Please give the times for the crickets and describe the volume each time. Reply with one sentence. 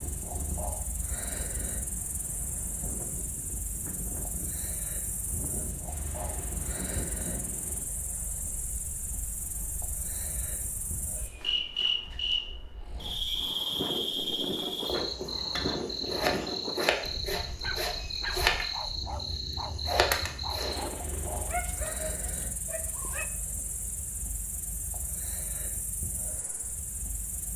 The crickets can be heard from 0.0 to 27.5 s, getting louder then quieter.